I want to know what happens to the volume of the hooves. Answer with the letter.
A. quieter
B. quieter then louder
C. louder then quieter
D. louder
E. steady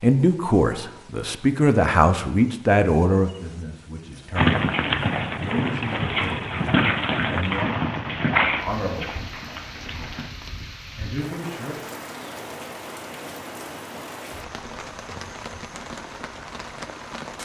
A.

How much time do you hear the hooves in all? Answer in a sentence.
The hooves can be heard for 6 seconds in total.